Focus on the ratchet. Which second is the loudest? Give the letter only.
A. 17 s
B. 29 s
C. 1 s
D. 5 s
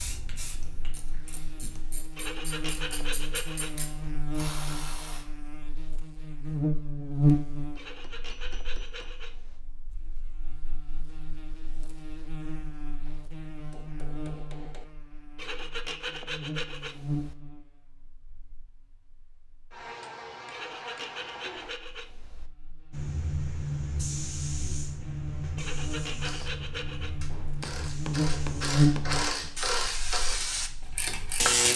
B.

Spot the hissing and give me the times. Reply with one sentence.
The hissing can be heard from 0.0 to 1.7 s and from 22.9 to 31.7 s.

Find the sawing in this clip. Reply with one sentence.
You can hear the sawing from 2.1 to 4.2 s, from 7.8 to 9.6 s, from 15.3 to 17.4 s, from 20.5 to 22.5 s and from 25.6 to 27.1 s.